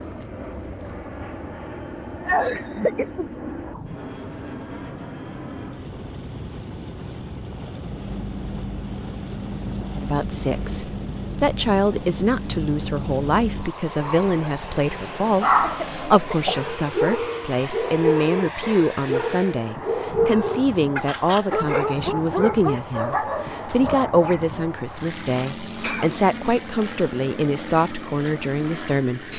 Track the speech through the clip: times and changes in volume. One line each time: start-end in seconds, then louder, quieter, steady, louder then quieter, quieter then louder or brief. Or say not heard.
9.9-29.3 steady.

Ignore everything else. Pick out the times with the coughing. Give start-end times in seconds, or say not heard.
2.1-3.8, 15.6-16.6, 25.8-26.6.